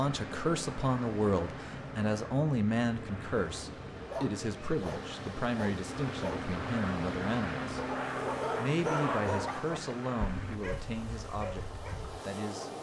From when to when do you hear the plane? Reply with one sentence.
You can hear the plane from 0.0 to 10.6 s.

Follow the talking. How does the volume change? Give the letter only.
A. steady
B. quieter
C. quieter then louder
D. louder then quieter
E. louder
B.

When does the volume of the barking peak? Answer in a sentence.
The loudest moment of the barking is at 9 seconds.